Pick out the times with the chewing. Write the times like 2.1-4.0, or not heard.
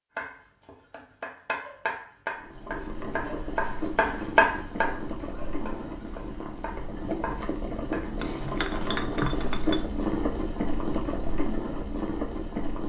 not heard.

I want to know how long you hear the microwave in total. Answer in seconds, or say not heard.
not heard.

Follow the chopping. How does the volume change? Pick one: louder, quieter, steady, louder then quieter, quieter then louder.
louder then quieter.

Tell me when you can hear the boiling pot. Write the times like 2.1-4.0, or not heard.
2.4-12.8.